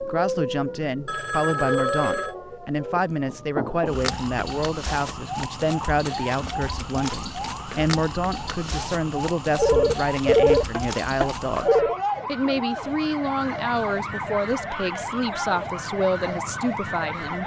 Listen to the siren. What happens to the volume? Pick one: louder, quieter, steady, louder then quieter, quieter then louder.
steady.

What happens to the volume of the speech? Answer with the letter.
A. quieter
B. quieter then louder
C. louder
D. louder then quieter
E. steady
E.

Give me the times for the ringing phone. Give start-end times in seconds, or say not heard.
1.1-2.4, 9.6-11.9.